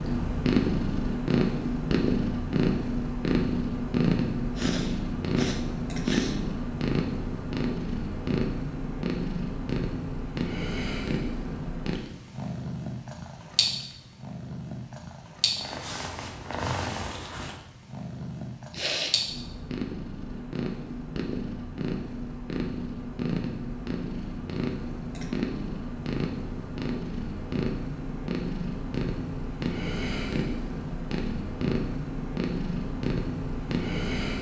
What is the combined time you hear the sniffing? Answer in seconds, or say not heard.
2 s.